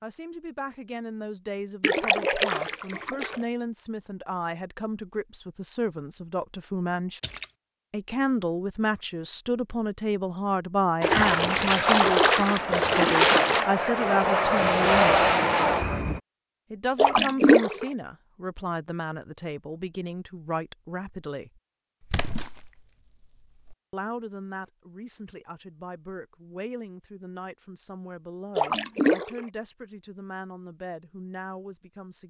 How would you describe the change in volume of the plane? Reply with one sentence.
The volume of the plane goes up.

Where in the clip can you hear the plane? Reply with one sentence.
The plane can be heard from 11.1 to 16.2 s.